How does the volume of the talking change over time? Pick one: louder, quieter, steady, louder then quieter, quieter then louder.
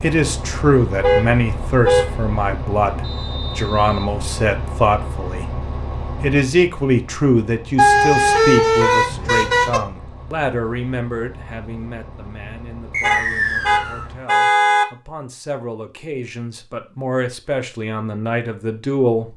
quieter then louder.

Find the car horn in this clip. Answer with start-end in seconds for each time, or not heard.
1.0-2.3, 7.8-9.8, 13.0-14.8.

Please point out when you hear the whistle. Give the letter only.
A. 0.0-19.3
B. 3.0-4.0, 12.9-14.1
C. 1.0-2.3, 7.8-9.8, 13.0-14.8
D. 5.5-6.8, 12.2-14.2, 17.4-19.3
B.